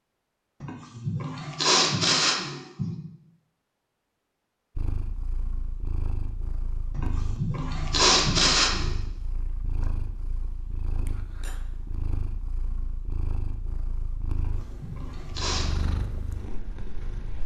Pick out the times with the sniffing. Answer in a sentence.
The sniffing can be heard from 0.6 to 3.0 s, from 7.0 to 8.9 s and from 14.3 to 15.8 s.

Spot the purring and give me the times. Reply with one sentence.
The purring can be heard from 4.8 to 17.4 s.